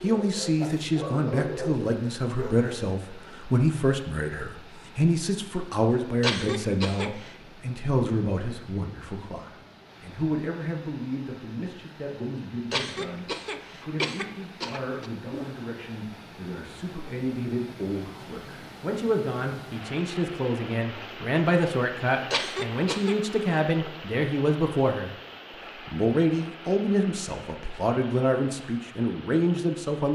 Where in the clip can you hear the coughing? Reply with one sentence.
You can hear the coughing from 6.2 to 7.3 s, from 12.7 to 15.1 s and from 22.3 to 23.1 s.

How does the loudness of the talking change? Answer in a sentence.
The loudness of the talking goes down, then up.